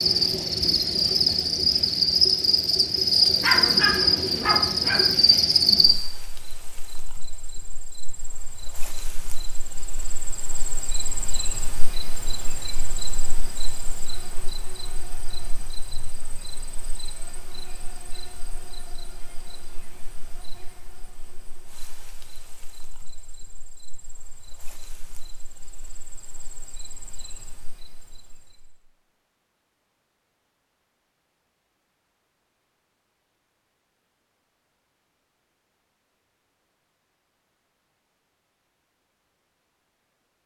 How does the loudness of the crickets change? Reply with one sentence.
The loudness of the crickets goes down.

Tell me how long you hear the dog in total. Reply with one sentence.
The dog can be heard for 2 seconds in total.